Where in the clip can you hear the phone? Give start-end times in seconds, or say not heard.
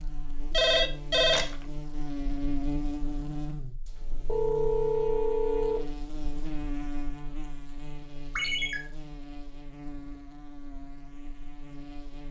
0.5-1.6, 4.2-5.8, 8.3-8.8.